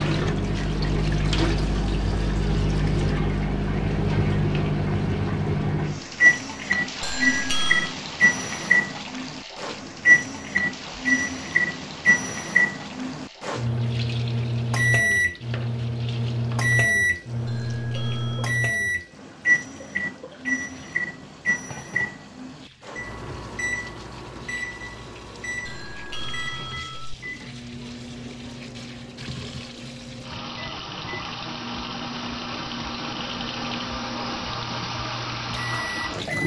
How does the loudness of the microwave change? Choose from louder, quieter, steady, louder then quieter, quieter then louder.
quieter.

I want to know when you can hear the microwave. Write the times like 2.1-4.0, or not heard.
0.0-36.4.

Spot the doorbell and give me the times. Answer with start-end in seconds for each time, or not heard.
7.0-8.0, 17.4-18.6, 25.6-27.1.